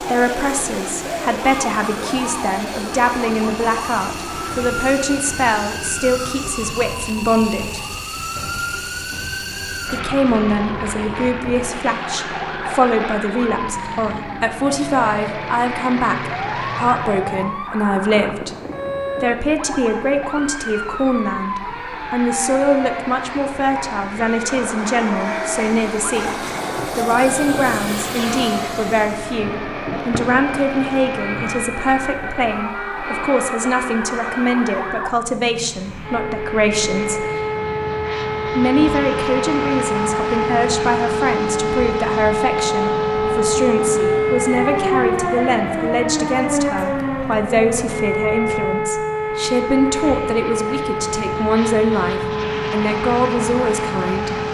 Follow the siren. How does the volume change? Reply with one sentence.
The loudness of the siren goes up.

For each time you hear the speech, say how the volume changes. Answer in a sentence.
The speech can be heard from 0.0 to 7.8 s, at a steady volume; from 9.9 to 18.6 s, at a steady volume; from 19.2 to 37.2 s, at a steady volume; and from 38.5 to 54.4 s, at a steady volume.